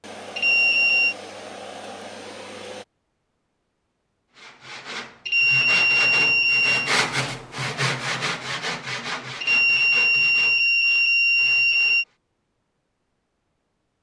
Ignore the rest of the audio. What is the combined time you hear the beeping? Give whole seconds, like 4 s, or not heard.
5 s.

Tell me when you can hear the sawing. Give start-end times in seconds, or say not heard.
4.3-12.1.